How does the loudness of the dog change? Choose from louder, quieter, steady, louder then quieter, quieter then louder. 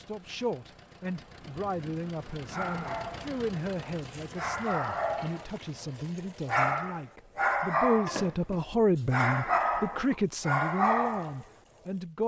louder.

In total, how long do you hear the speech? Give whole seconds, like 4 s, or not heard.
12 s.